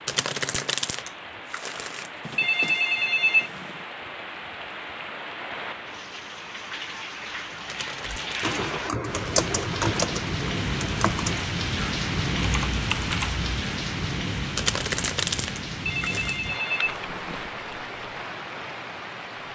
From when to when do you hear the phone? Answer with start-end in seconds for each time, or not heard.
2.2-3.8, 15.7-17.4.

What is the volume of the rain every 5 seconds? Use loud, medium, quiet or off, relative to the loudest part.
medium, medium, loud, medium.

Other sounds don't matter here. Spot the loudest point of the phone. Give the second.
3 s.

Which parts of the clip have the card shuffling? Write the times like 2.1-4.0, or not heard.
0.1-2.4, 7.7-8.6, 14.6-16.4.